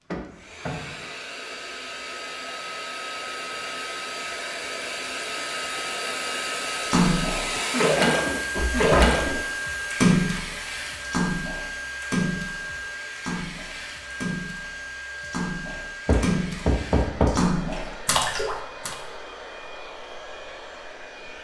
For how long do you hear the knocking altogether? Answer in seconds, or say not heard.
3 s.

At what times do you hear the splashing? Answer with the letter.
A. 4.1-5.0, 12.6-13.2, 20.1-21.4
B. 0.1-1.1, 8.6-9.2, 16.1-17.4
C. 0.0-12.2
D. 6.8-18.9
D.